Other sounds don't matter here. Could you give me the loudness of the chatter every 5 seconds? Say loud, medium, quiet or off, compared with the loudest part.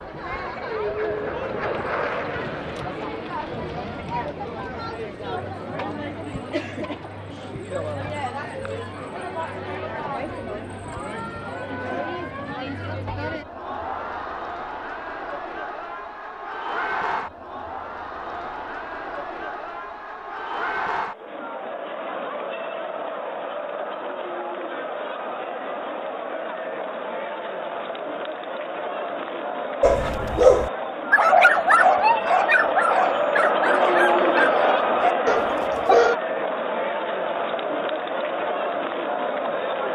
medium, medium, medium, medium, medium, medium, loud, loud.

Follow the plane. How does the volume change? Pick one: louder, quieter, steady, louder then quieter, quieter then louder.
louder then quieter.